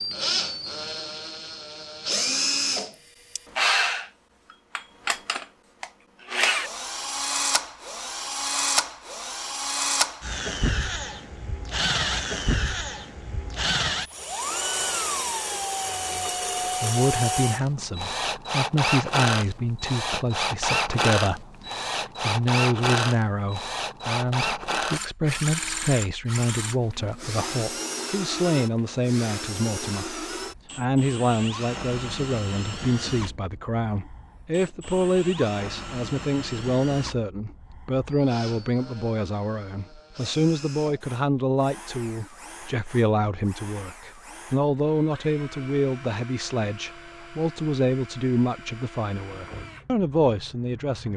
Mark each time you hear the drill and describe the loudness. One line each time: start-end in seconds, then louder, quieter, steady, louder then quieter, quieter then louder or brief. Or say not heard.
0.0-51.1 quieter.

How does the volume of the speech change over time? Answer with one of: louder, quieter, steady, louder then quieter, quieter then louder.
steady.